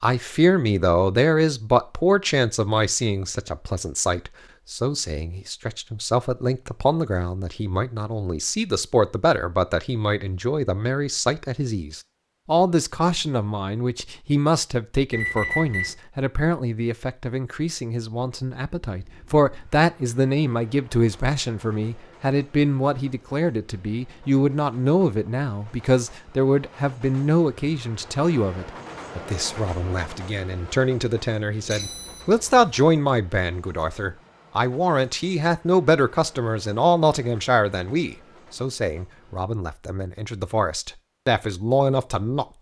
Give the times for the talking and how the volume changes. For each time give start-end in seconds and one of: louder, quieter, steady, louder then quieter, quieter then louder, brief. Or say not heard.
0.0-42.5 steady.